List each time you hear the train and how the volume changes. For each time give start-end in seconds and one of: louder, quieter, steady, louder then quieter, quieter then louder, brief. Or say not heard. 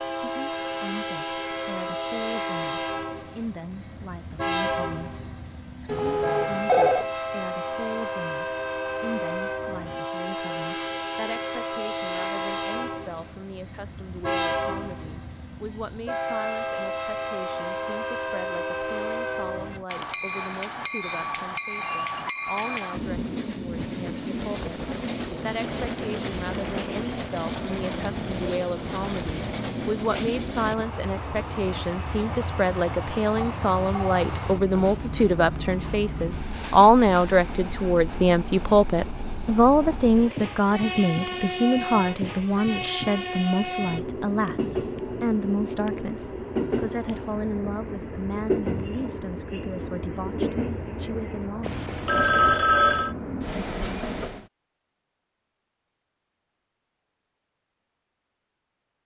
0.0-54.5 steady.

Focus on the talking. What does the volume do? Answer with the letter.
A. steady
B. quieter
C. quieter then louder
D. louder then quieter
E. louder
D.